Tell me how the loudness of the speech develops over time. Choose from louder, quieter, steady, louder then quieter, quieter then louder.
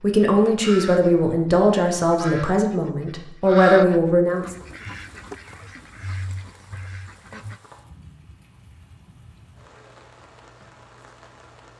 quieter then louder.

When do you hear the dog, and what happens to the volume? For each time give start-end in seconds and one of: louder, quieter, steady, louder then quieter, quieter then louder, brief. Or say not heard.
not heard.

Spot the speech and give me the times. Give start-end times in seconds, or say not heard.
0.0-4.5.